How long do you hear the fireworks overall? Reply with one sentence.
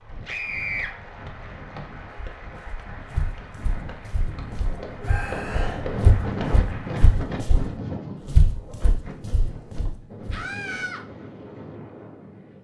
You can't hear the fireworks here.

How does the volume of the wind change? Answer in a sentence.
The volume of the wind goes up, then down.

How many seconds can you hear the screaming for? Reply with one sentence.
You can hear the screaming for 2 seconds altogether.